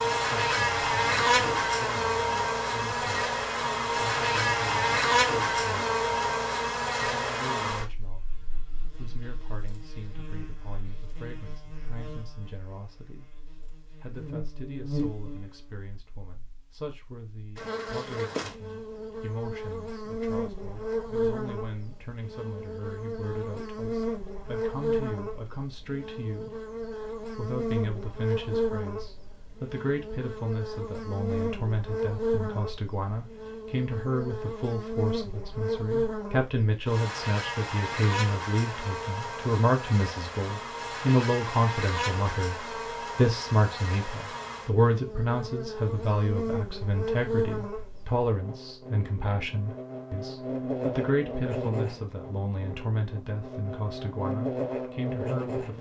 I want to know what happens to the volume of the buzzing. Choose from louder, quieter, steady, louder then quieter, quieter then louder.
quieter.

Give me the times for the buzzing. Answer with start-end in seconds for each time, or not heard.
0.0-55.7.